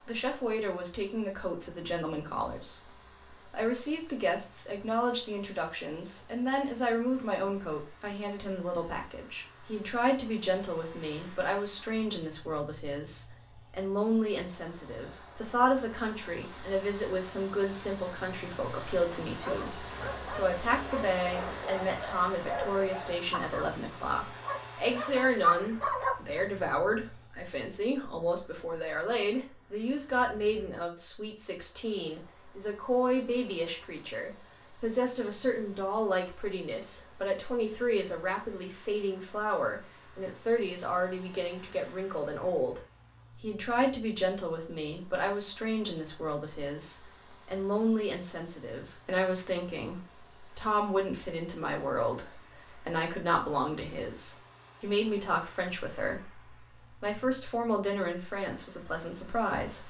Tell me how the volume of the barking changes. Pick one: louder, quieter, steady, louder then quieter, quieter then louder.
louder.